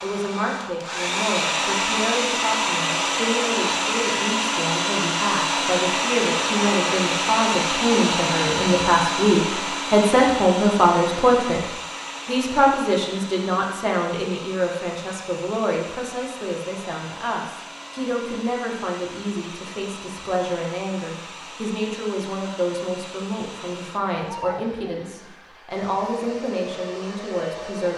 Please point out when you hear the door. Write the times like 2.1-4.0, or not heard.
not heard.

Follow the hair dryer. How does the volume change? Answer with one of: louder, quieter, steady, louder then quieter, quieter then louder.
quieter.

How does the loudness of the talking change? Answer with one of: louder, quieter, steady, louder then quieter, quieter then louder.
louder then quieter.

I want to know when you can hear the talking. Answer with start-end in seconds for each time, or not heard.
0.0-11.6, 12.2-27.9.